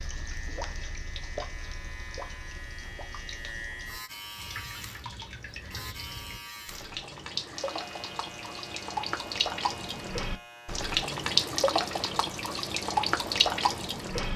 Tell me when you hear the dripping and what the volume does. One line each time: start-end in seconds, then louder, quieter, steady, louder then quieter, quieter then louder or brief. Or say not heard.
0.0-14.3 louder.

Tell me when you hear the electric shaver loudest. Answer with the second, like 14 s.
4 s.